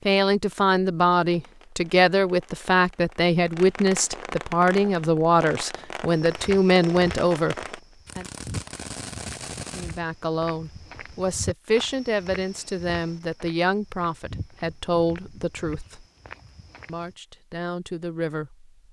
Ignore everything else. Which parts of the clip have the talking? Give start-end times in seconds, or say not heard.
0.1-7.5, 9.8-16.1, 16.9-18.7.